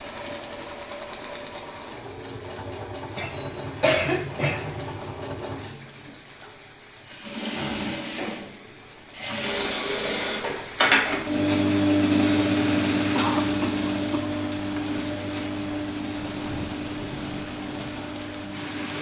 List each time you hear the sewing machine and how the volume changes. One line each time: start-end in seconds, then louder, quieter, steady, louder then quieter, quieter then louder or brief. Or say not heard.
0.0-18.9 louder then quieter.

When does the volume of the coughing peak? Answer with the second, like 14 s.
4 s.